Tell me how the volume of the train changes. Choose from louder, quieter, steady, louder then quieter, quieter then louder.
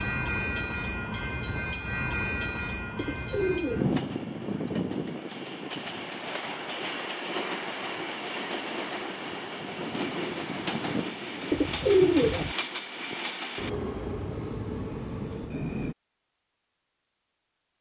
steady.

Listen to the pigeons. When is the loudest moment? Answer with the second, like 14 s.
12 s.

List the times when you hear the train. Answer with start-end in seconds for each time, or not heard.
0.0-15.9.